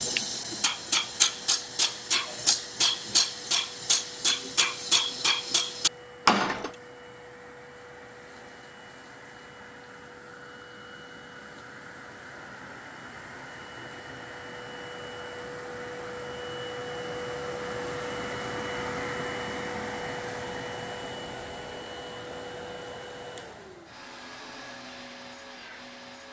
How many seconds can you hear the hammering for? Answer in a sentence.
The hammering can be heard for 7 seconds in total.